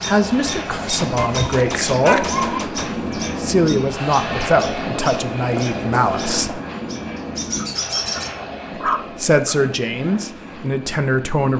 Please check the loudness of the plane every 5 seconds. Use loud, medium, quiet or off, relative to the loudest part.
loud, loud, medium.